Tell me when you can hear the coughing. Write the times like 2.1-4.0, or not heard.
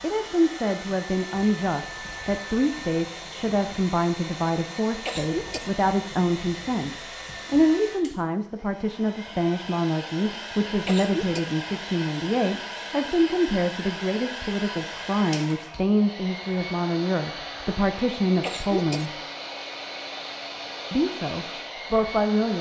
5.0-5.7, 10.8-11.4, 18.4-19.1.